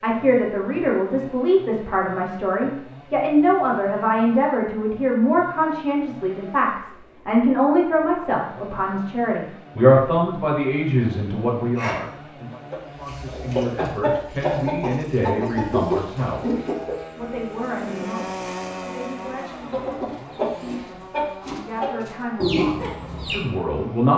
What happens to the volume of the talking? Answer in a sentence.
The volume of the talking goes down.